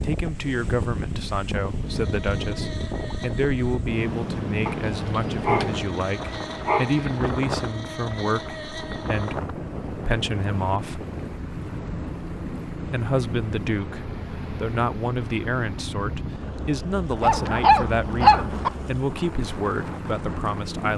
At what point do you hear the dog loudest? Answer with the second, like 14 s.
18 s.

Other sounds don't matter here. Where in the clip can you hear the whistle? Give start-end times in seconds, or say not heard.
not heard.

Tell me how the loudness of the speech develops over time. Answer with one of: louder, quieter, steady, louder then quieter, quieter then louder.
steady.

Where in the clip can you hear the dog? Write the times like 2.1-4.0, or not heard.
4.7-7.2, 17.2-18.7.